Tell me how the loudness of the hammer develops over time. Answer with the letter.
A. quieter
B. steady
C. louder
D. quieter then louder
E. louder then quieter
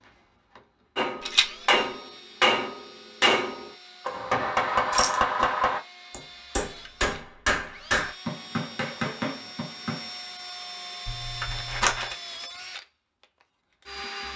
A.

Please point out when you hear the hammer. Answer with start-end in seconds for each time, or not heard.
0.9-10.1.